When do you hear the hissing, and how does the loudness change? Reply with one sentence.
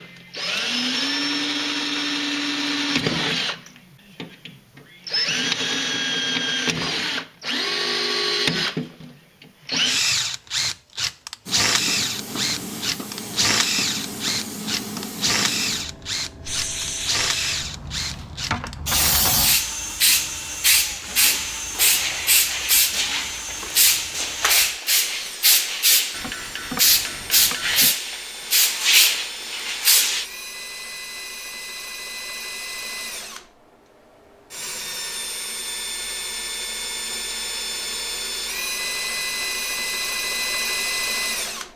You can hear the hissing from 11.4 to 30.2 s, getting louder.